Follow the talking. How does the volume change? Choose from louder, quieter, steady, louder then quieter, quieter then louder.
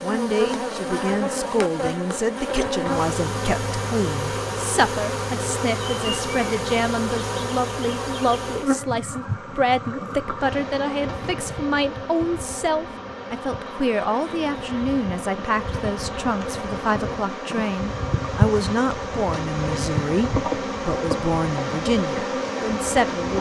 steady.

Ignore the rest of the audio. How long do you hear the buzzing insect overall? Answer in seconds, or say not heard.
23 s.